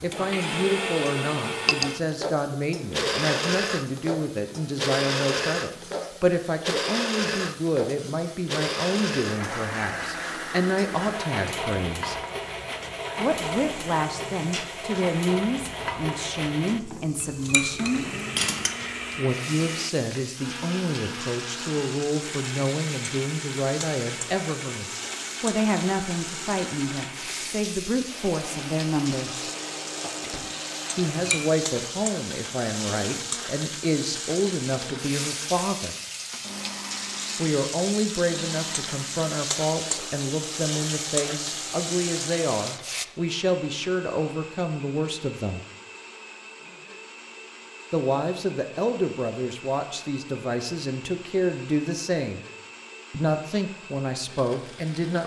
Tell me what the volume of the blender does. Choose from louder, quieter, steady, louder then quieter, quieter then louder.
quieter.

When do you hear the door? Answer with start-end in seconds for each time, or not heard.
29.4-30.6.